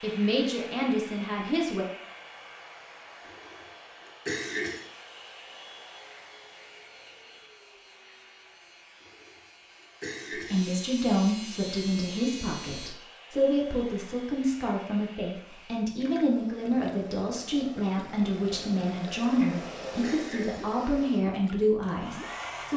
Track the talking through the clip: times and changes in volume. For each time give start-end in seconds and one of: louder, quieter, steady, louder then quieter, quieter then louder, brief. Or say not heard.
0.0-1.9 brief
10.3-22.7 steady.